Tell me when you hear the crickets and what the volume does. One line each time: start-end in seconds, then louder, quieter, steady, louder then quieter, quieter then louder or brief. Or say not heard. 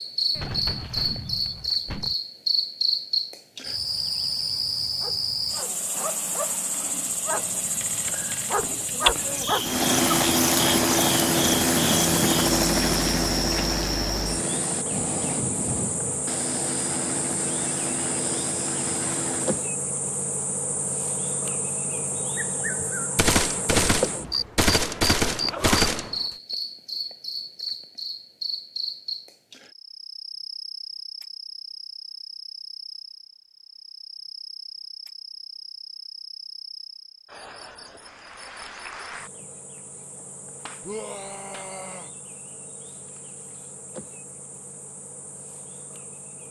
0.0-46.4 quieter.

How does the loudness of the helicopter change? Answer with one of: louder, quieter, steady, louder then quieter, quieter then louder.
quieter.